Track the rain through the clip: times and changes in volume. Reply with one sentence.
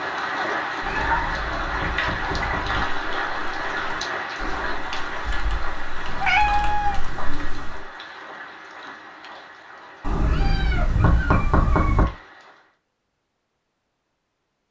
The rain can be heard from 0.0 to 12.8 s, getting quieter.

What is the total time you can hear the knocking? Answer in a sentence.
The knocking can be heard for 4 seconds in total.